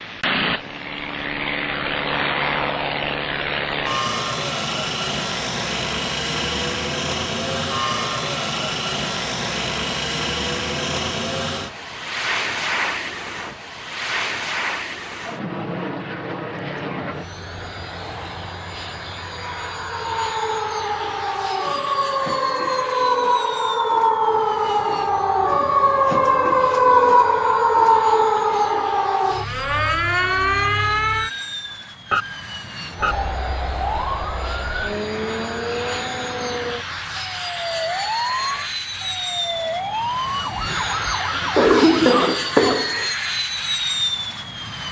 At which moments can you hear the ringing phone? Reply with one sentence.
The ringing phone can't be heard in this clip.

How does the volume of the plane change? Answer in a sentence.
The loudness of the plane goes down, then up.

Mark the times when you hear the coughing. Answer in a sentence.
You can hear the coughing from 41.5 to 43.1 s.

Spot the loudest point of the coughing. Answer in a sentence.
The volume of the coughing peaks at 42 seconds.